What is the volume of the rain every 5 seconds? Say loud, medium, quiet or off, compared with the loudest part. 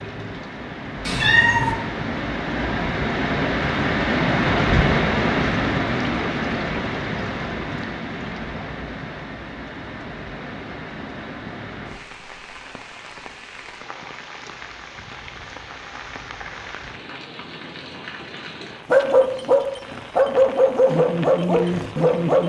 loud, loud, quiet, quiet, quiet.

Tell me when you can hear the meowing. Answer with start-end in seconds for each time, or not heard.
1.1-1.8.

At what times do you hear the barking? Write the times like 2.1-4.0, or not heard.
18.9-22.4.